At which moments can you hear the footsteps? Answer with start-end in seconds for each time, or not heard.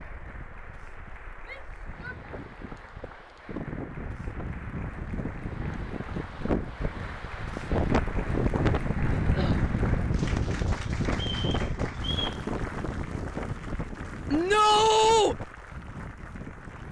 not heard.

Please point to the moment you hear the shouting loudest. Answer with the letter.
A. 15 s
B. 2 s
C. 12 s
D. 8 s
A.